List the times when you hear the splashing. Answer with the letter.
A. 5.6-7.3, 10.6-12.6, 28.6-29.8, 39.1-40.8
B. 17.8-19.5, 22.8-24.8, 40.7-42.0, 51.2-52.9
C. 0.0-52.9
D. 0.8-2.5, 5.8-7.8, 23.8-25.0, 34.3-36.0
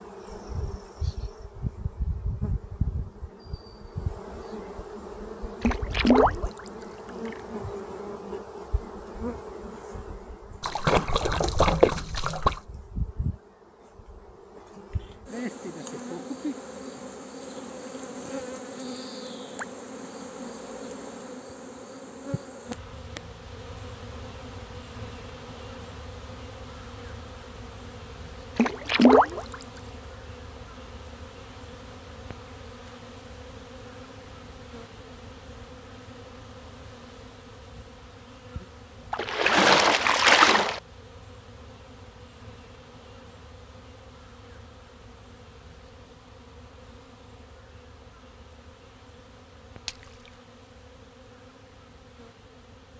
A.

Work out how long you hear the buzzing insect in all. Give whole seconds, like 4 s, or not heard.
53 s.